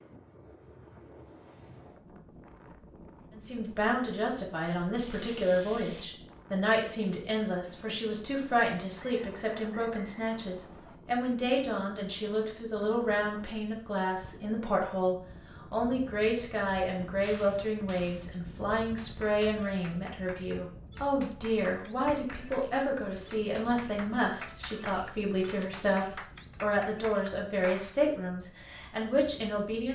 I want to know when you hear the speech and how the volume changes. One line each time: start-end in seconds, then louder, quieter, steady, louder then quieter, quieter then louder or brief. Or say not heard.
3.3-29.9 steady.